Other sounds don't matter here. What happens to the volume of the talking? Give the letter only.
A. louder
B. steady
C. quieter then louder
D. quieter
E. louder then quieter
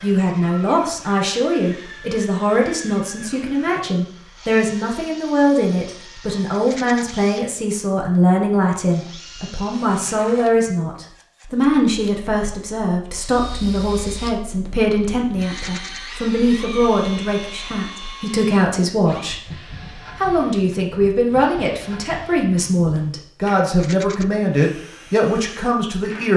B.